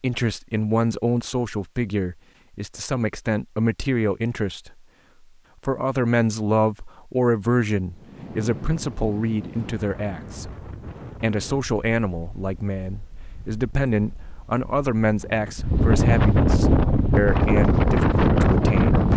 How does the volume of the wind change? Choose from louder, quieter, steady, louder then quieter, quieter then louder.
quieter then louder.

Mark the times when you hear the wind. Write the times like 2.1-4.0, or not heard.
7.8-19.1.